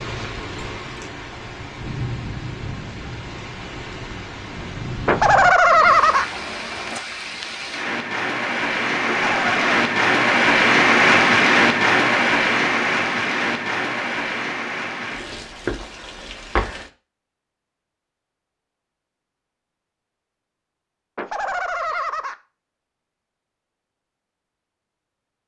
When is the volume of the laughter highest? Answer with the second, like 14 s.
6 s.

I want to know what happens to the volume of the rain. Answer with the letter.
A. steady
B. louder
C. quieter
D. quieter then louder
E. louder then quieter
E.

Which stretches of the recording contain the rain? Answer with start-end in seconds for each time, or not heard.
0.0-16.9.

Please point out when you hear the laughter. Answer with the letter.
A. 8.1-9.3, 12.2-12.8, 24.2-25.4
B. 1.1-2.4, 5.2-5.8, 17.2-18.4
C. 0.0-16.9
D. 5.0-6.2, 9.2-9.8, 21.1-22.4
D.